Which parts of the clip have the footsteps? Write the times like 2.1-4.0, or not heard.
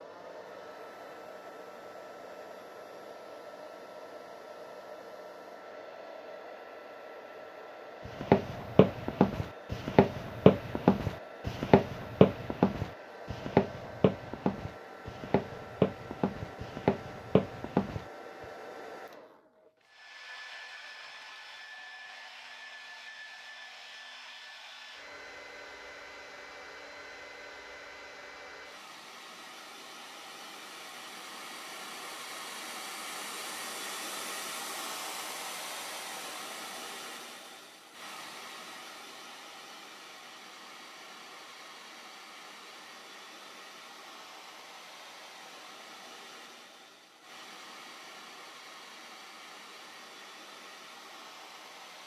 8.1-18.1.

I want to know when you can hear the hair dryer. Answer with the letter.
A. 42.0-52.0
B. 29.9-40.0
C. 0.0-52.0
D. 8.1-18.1
C.